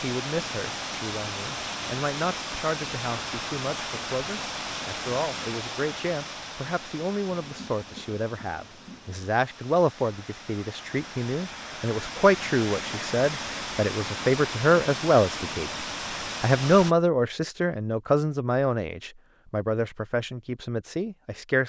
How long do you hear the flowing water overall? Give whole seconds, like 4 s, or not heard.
17 s.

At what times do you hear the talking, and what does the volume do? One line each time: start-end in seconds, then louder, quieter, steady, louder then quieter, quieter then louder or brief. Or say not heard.
0.0-15.7 louder
16.4-21.6 quieter.